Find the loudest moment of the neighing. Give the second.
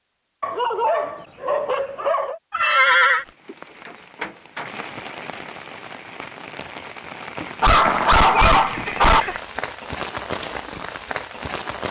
3 s.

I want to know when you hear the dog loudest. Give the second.
8 s.